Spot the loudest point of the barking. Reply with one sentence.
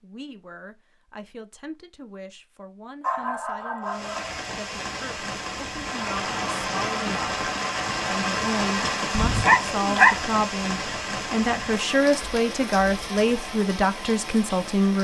The volume of the barking peaks at 10 seconds.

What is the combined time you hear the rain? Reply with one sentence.
The rain can be heard for 11 seconds in total.